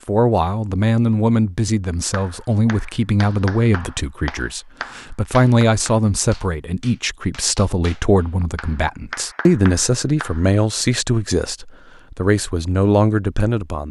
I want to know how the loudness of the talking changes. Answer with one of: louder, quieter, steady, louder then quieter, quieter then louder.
steady.